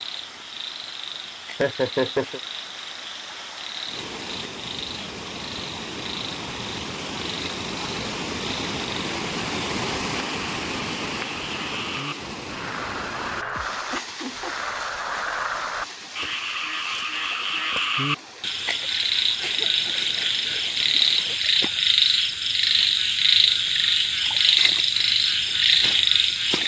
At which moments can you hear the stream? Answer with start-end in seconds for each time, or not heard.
0.0-21.4.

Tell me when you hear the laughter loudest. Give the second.
2 s.